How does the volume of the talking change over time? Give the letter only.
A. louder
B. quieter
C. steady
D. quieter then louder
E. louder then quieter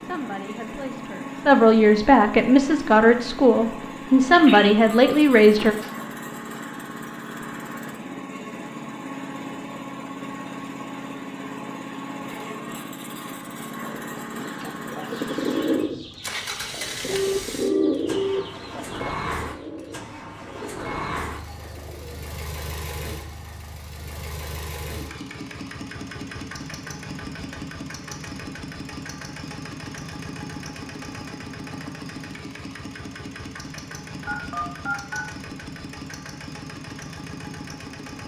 A.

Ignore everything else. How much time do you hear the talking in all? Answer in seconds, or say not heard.
6 s.